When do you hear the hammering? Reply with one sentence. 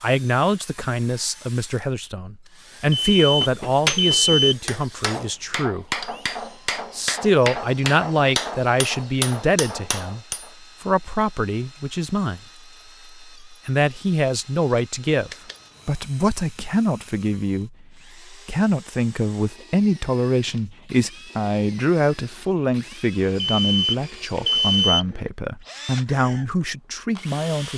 You can hear the hammering from 3.0 to 10.5 s.